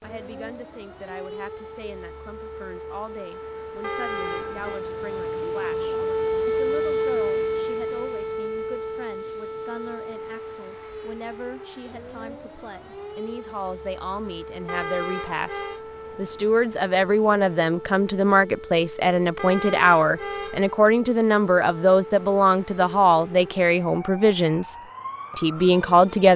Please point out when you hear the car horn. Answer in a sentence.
You can hear the car horn from 3.8 to 4.8 s, from 14.7 to 15.8 s and from 19.4 to 20.8 s.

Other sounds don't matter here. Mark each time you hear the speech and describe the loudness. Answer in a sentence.
The speech can be heard from 0.0 to 24.8 s, getting louder; and briefly from 25.4 to 26.3 s.